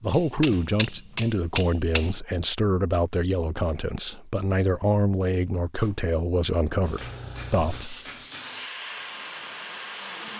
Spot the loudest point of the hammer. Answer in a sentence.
The volume of the hammer peaks at 1 second.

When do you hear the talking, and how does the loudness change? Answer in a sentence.
The talking can be heard from 0.0 to 8.0 s, at a steady volume.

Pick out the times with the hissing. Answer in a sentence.
You can hear the hissing from 6.8 to 10.3 s.